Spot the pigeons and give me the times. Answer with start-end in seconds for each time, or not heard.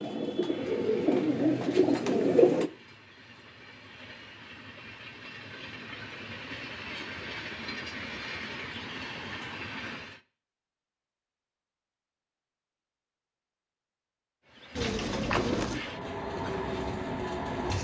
0.0-2.7, 14.8-17.7.